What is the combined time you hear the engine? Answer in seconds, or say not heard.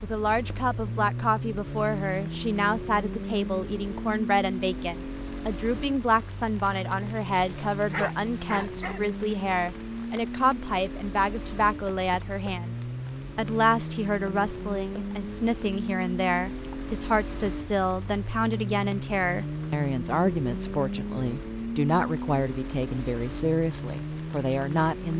25 s.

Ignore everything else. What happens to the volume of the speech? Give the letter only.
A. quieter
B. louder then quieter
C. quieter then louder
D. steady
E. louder
D.